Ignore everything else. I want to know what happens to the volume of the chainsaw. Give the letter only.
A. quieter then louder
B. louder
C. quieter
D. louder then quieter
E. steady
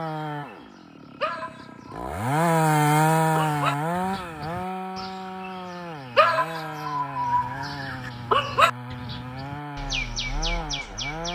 D.